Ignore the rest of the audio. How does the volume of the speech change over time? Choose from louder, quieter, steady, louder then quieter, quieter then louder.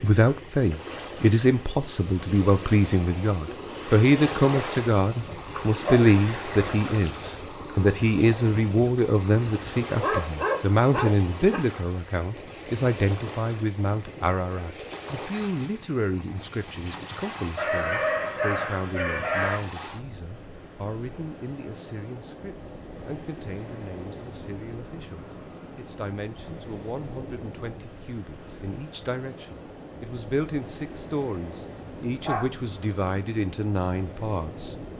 quieter then louder.